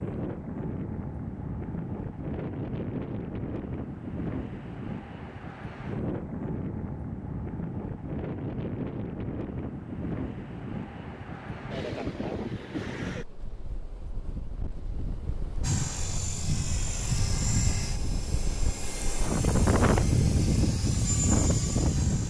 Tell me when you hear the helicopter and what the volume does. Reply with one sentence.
The helicopter can be heard from 15.6 to 22.2 s, getting quieter then louder.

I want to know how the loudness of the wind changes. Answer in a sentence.
The volume of the wind goes down, then up.